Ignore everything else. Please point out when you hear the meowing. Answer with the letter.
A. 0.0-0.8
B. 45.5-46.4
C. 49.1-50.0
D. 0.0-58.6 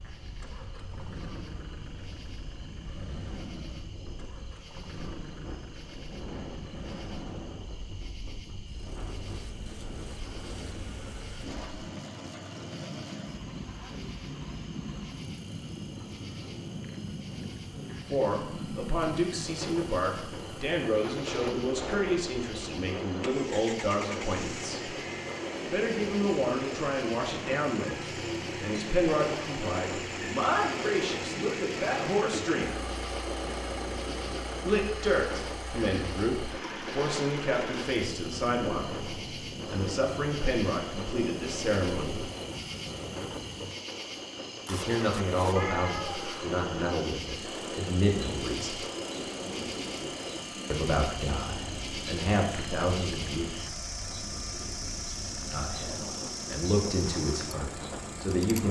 B.